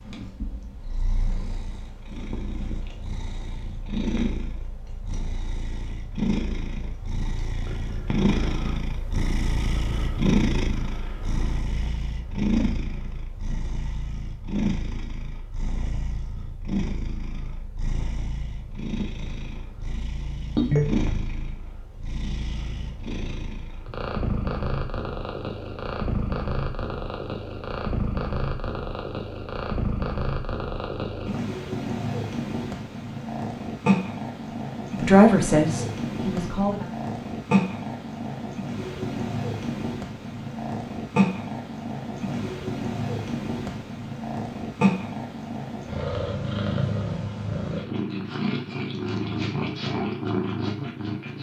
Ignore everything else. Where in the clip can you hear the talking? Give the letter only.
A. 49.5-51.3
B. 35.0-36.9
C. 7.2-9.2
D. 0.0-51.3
B.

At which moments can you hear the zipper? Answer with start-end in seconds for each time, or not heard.
not heard.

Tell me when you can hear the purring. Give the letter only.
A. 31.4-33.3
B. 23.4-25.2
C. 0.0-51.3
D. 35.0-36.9
C.